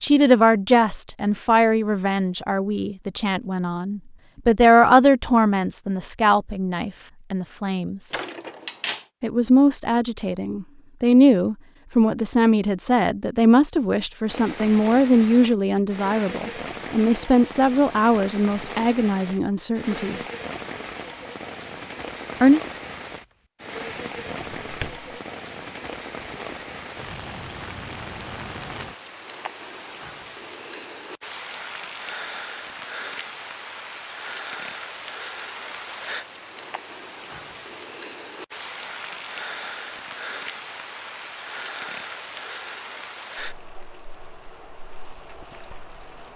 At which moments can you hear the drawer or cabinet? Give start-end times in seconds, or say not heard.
8.1-9.1, 23.9-25.1.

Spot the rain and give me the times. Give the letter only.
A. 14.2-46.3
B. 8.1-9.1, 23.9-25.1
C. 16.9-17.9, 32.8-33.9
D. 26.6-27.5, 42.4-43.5
A.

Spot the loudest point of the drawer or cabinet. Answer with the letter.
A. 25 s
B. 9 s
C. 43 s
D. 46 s
B.